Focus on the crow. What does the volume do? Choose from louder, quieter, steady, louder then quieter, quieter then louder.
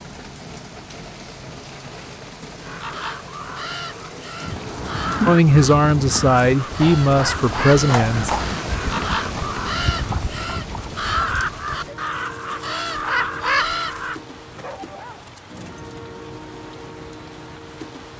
louder.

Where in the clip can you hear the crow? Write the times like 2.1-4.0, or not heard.
2.6-14.2.